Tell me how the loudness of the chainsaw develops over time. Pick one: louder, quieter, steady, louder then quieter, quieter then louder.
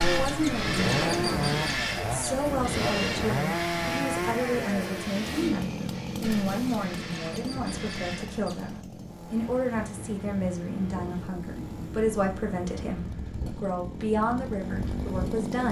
quieter then louder.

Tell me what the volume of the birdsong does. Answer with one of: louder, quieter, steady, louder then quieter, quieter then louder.
quieter.